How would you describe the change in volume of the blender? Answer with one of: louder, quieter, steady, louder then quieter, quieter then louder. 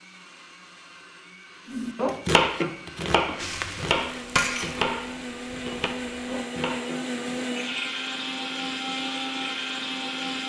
louder.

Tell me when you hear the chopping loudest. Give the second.
2 s.